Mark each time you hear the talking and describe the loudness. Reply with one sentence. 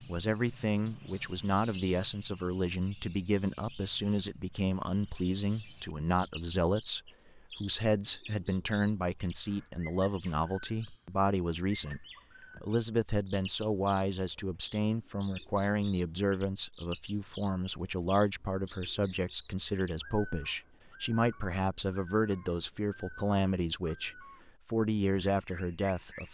You can hear the talking from 0.0 to 26.2 s, at a steady volume.